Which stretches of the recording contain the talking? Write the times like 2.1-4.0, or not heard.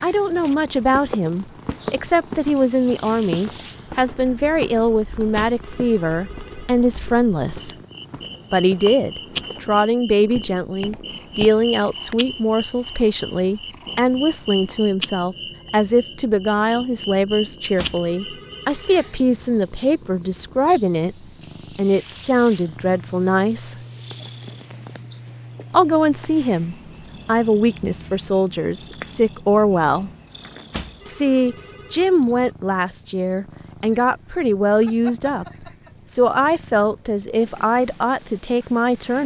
0.0-7.8, 8.5-23.8, 25.7-30.1, 31.1-39.2.